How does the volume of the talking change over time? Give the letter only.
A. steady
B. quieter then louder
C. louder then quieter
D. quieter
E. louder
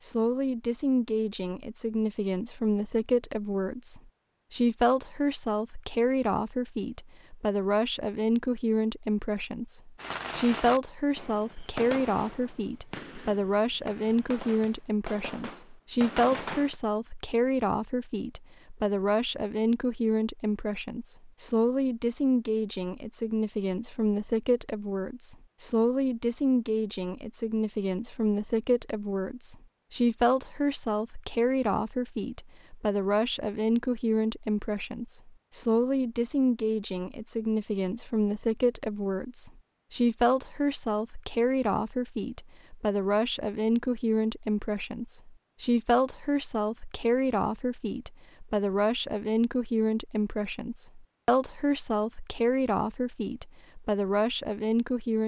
A.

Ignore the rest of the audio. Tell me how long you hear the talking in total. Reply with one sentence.
The talking can be heard for 55 seconds in total.